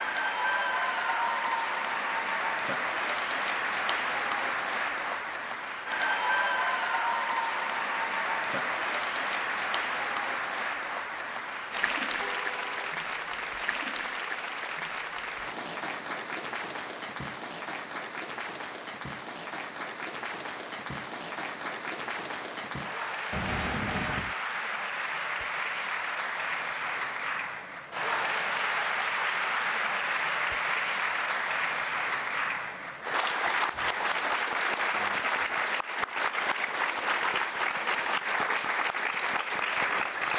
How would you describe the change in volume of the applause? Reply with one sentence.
The volume of the applause goes down, then up.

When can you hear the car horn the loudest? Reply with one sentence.
The loudest moment of the car horn is at 24 seconds.